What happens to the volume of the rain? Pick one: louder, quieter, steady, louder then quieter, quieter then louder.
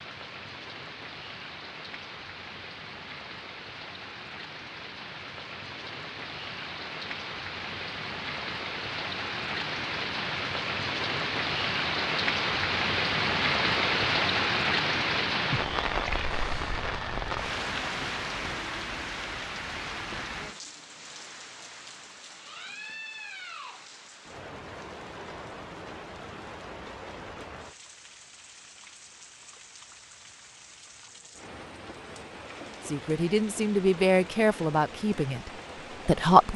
louder then quieter.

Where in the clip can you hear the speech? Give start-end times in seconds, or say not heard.
32.9-36.5.